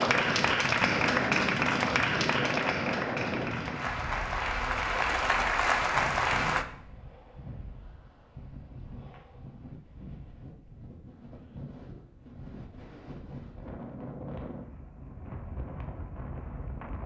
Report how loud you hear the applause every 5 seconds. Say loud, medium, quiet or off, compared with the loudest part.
loud, loud, off, off.